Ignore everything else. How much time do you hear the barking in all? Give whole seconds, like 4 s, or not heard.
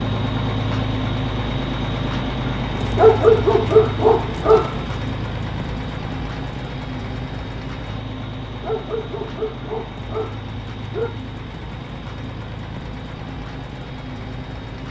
5 s.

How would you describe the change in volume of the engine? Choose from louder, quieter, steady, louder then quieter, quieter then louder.
quieter.